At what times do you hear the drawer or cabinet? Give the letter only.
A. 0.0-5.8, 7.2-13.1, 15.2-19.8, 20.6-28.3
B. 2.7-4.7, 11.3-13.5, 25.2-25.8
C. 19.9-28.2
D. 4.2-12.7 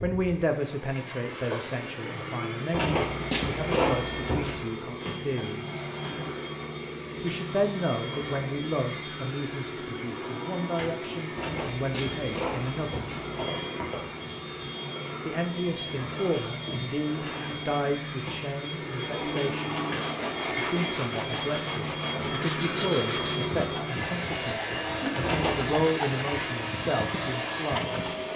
B.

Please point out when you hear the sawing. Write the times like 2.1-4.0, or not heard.
19.9-28.2.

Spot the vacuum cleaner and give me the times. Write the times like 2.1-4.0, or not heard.
0.0-28.3.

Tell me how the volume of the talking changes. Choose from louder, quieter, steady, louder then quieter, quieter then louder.
steady.